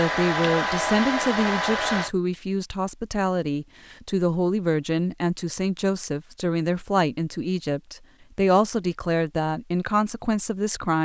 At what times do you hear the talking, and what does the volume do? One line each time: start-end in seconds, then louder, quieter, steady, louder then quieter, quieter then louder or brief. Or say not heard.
0.0-11.0 steady.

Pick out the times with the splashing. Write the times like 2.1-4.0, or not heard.
not heard.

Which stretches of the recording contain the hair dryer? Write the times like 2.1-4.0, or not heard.
0.0-2.1.